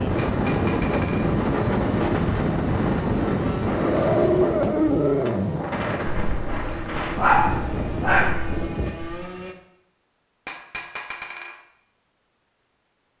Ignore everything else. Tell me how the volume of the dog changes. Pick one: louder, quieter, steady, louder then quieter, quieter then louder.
quieter then louder.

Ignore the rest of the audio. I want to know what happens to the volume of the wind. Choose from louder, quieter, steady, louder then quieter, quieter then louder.
quieter.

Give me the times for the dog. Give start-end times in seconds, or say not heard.
3.8-9.2.